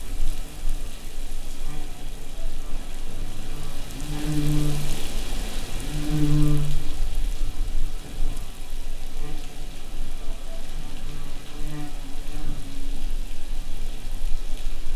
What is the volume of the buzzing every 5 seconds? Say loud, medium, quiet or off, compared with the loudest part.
loud, loud, quiet.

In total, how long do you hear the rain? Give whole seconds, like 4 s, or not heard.
15 s.